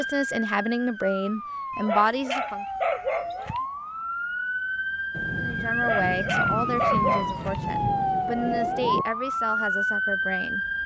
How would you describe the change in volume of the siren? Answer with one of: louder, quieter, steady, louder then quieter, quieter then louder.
louder.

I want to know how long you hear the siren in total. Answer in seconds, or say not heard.
11 s.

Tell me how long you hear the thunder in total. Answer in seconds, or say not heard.
4 s.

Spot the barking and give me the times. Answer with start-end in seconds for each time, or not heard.
1.7-3.6, 5.7-7.6.